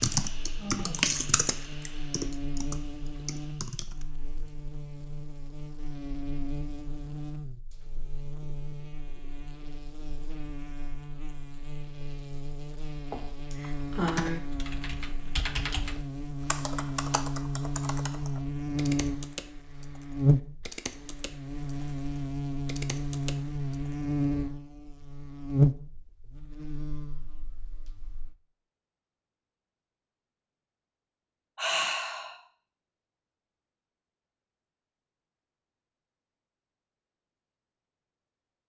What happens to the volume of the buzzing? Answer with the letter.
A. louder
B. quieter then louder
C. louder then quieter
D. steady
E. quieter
A.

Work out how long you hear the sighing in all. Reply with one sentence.
You can hear the sighing for 3 seconds altogether.